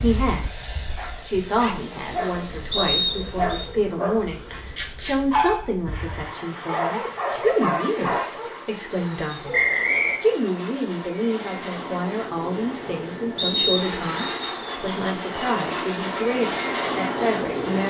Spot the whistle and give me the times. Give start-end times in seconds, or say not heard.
2.7-3.6, 9.5-10.2, 13.3-14.3.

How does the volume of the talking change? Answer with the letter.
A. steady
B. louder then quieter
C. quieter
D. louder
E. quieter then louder
A.